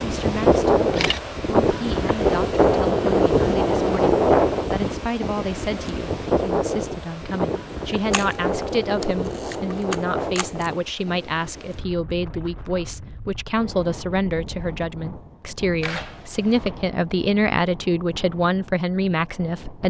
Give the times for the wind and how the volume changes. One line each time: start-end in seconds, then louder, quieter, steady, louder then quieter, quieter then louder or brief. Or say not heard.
0.0-19.8 quieter.